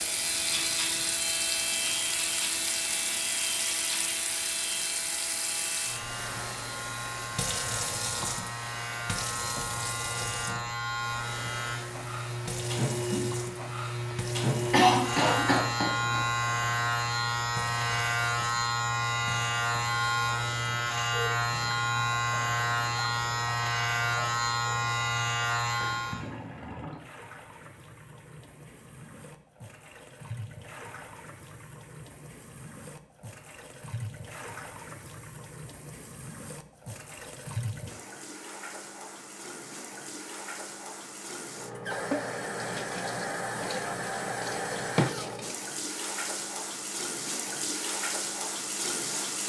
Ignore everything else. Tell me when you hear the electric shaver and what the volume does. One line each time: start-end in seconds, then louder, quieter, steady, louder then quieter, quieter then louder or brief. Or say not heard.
0.0-26.3 louder.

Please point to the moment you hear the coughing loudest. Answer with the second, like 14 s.
15 s.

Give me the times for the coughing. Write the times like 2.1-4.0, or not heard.
14.7-16.2.